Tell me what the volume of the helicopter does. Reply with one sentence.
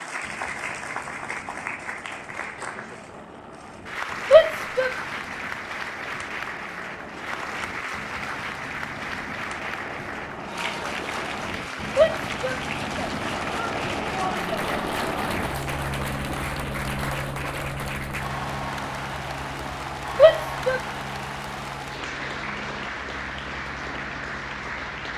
The loudness of the helicopter goes up, then down.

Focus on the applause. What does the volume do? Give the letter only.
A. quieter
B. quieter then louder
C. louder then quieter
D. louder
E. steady
E.